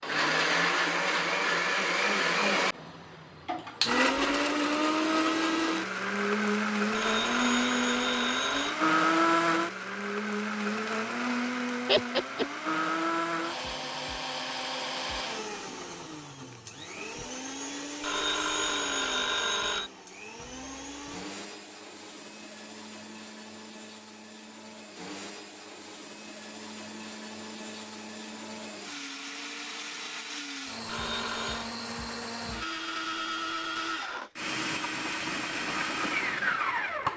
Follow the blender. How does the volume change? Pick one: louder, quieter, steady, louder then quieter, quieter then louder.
quieter then louder.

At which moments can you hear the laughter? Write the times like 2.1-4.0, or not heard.
11.8-12.4.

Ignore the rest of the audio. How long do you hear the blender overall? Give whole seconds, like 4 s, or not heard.
37 s.